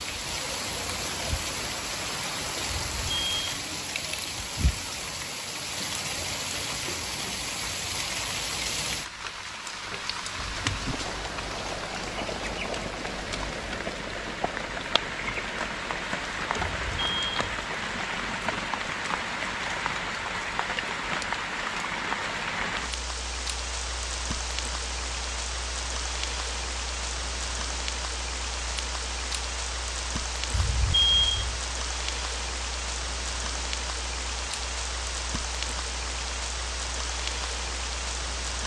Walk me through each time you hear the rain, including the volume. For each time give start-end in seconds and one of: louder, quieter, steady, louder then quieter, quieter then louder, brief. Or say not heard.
0.0-38.6 steady.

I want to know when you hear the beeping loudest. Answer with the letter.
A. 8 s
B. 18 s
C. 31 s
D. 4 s
C.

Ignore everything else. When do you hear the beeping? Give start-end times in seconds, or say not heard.
2.7-3.6, 16.6-17.4, 30.5-31.6.